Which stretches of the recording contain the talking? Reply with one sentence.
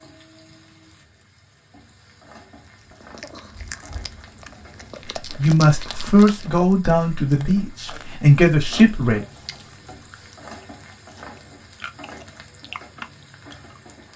The talking can be heard from 5.3 to 9.2 s.